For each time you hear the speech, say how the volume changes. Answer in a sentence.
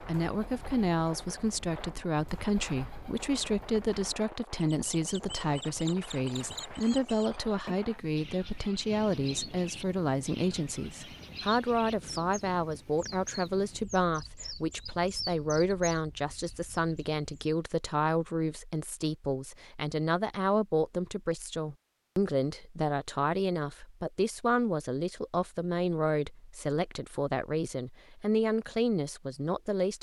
You can hear the speech from 0.0 to 29.9 s, at a steady volume.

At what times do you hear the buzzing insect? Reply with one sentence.
You can't hear the buzzing insect here.